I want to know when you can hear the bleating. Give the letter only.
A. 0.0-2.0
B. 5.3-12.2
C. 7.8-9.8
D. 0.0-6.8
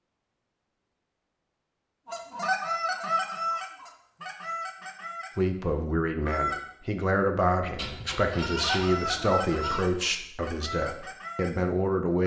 C.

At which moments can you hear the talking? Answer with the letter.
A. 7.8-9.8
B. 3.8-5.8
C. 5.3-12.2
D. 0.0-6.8
C.